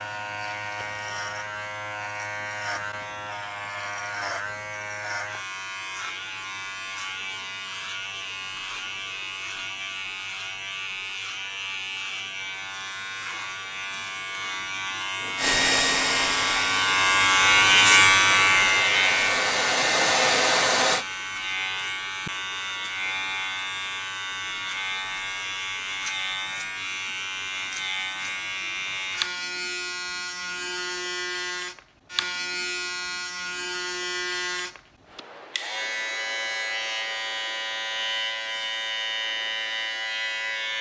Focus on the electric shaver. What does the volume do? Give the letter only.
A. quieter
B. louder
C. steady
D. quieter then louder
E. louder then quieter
E.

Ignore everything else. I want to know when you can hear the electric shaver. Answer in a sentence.
You can hear the electric shaver from 0.0 to 40.7 s.